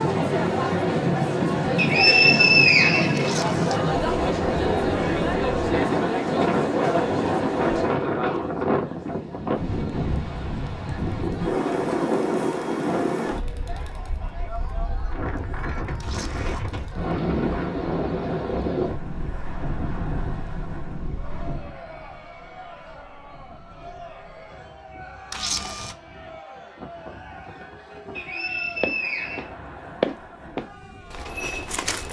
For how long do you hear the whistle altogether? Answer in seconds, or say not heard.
3 s.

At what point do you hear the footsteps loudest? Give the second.
30 s.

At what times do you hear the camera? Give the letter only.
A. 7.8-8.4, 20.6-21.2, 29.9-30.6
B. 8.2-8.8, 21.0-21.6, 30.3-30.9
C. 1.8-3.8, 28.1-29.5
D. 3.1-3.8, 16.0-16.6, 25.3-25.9
D.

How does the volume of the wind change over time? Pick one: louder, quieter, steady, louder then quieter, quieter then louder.
quieter.